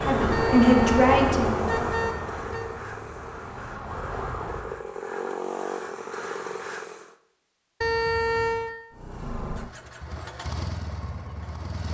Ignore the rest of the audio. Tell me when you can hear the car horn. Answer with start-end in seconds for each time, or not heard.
0.3-2.7, 7.8-8.7.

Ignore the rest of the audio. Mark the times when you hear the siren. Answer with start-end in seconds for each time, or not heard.
0.0-4.8.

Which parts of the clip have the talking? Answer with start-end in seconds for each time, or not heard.
0.0-2.1.